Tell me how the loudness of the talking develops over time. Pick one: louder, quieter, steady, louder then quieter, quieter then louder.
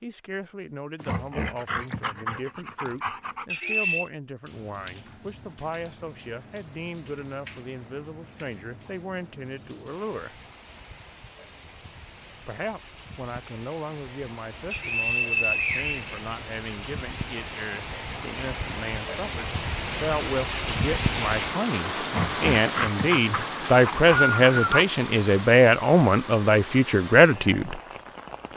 louder.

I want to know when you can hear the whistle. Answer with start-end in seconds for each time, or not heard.
3.5-4.1, 14.7-16.2, 23.6-24.9.